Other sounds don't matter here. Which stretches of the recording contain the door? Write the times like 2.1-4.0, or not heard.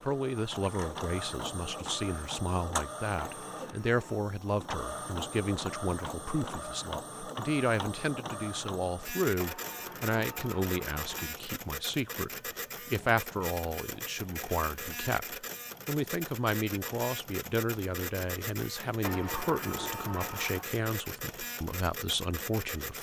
3.2-4.2, 9.3-11.3, 19.0-20.7.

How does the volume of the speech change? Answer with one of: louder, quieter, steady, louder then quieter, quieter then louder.
steady.